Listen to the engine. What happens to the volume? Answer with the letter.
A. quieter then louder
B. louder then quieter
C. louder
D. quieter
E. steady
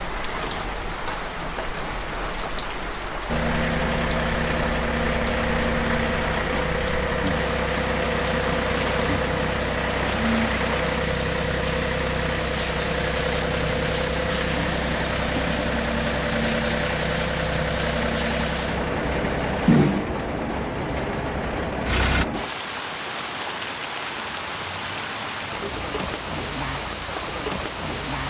E.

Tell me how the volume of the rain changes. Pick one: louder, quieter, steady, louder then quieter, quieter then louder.
steady.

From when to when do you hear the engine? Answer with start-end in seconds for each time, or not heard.
3.2-22.2.